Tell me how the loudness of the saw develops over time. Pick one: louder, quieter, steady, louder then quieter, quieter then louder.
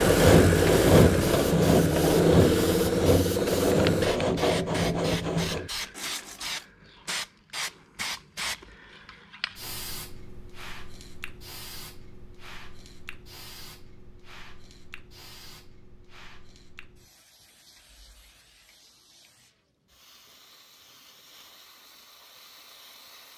quieter.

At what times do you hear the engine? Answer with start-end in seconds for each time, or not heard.
0.0-4.1.